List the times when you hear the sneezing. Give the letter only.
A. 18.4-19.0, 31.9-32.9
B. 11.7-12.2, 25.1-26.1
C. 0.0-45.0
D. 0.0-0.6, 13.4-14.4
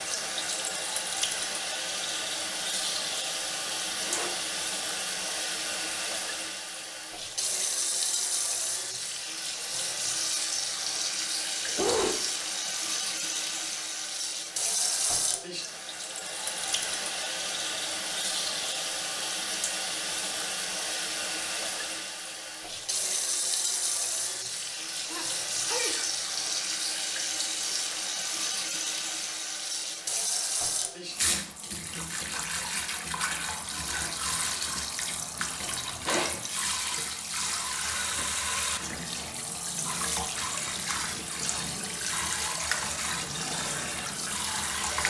B.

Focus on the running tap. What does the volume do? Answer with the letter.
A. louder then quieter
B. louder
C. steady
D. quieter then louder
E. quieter
C.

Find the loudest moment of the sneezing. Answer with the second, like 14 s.
12 s.